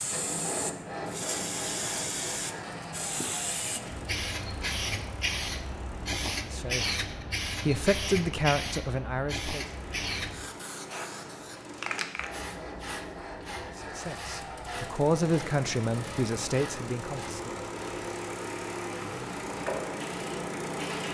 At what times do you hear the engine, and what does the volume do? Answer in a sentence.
You can hear the engine from 0.0 to 6.2 s, getting quieter; and from 9.6 to 21.0 s, getting louder.